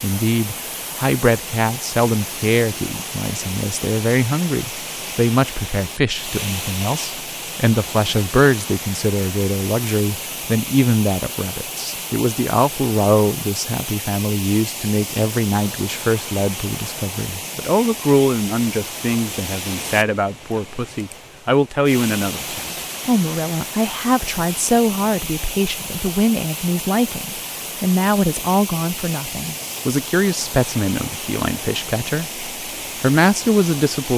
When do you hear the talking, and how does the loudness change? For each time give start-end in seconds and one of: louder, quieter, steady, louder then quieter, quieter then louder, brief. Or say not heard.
0.0-34.1 steady.